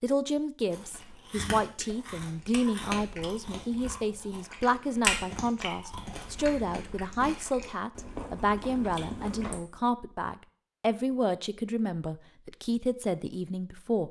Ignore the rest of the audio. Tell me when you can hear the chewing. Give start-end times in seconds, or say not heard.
0.7-9.6.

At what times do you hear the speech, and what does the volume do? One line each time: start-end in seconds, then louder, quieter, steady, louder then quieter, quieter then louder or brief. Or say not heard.
0.0-14.0 steady.